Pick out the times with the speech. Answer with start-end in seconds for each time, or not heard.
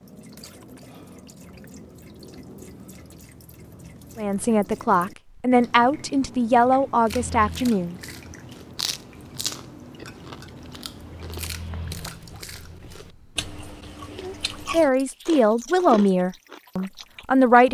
4.2-8.0, 14.2-17.6.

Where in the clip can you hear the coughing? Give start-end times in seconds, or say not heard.
not heard.